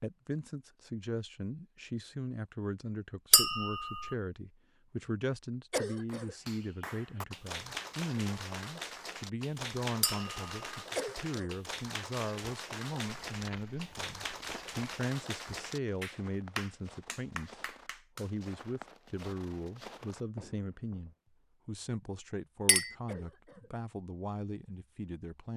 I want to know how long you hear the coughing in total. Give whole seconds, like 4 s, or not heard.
2 s.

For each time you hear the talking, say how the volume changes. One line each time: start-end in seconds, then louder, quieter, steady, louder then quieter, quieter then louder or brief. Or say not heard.
0.0-25.5 steady.